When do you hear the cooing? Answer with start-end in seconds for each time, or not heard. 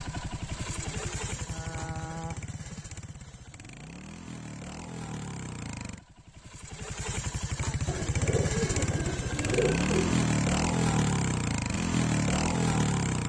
0.7-2.5, 7.8-10.2.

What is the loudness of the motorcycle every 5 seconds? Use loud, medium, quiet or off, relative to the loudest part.
quiet, medium, loud.